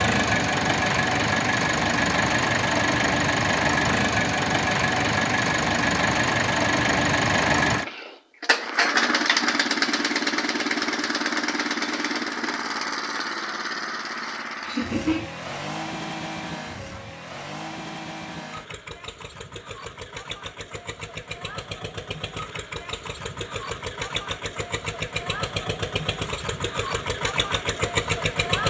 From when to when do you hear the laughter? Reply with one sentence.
The laughter can be heard from 14.6 to 15.2 s.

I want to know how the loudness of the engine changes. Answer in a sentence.
The volume of the engine goes down, then up.